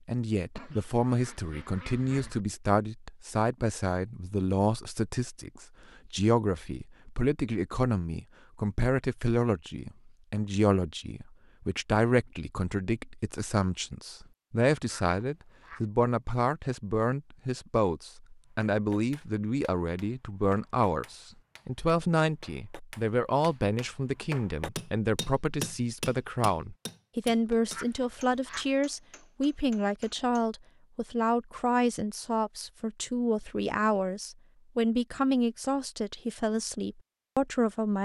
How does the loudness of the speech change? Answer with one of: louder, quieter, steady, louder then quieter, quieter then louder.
steady.